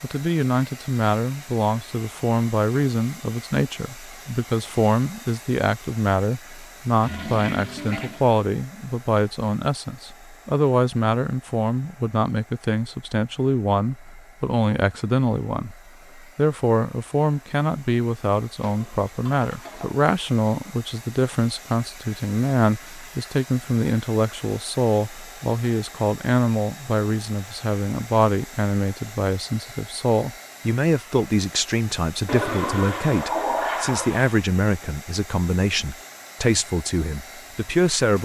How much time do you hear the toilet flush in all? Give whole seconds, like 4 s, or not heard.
5 s.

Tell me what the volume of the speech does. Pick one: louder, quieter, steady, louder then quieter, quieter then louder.
steady.